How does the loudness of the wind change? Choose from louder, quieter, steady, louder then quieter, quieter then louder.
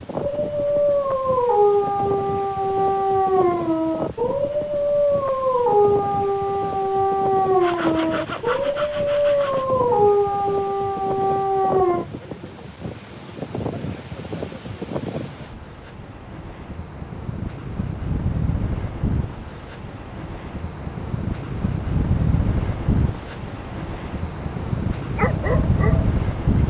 louder.